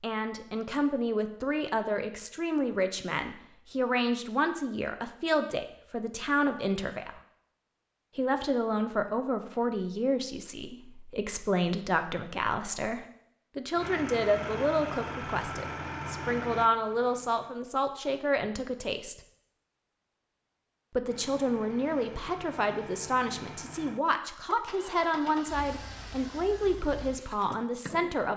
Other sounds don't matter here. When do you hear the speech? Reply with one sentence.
You can hear the speech from 0.0 to 7.2 s, from 8.2 to 19.2 s and from 20.9 to 28.3 s.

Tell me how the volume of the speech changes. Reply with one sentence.
The volume of the speech stays about the same.